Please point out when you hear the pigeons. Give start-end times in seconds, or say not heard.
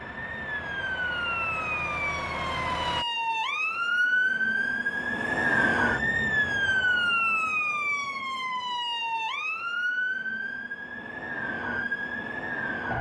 not heard.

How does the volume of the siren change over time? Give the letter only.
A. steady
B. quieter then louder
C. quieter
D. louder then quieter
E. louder
D.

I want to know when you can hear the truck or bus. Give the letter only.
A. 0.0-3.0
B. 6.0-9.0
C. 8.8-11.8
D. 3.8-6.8
A.